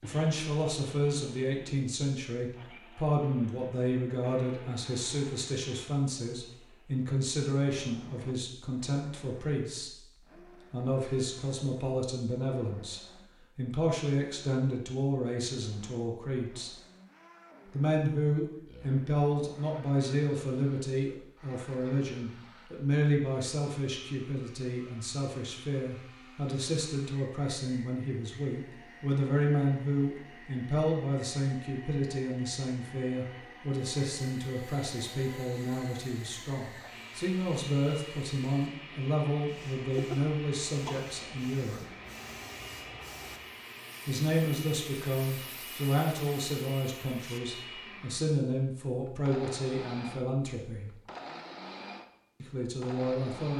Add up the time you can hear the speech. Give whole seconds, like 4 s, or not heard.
48 s.